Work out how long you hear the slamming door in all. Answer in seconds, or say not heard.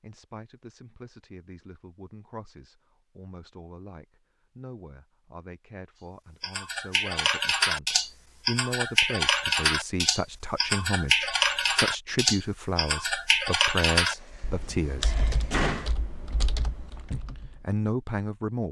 2 s.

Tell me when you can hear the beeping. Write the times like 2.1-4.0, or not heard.
not heard.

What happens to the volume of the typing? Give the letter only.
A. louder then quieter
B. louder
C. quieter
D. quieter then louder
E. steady
C.